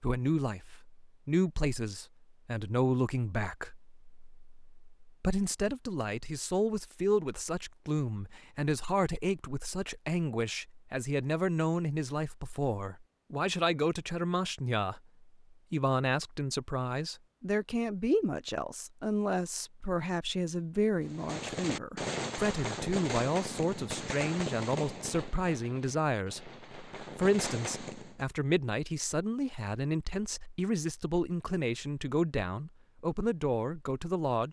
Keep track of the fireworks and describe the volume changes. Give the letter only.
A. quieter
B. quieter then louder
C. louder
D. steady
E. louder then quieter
B.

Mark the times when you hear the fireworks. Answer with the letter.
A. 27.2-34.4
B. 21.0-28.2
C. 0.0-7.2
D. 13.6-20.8
B.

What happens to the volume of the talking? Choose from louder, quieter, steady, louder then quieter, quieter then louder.
steady.